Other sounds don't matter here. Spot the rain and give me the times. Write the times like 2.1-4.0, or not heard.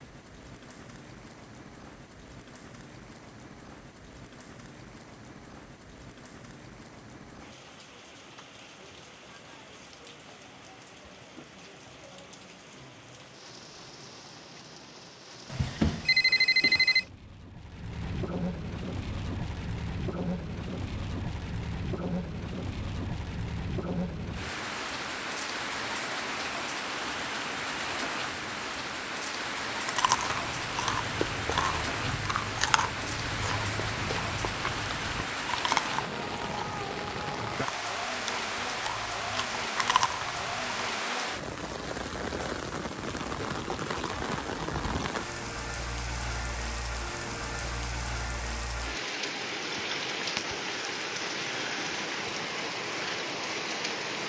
0.0-54.2.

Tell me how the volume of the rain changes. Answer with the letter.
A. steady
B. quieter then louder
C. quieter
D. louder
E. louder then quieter
D.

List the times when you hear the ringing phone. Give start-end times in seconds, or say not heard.
15.5-17.1.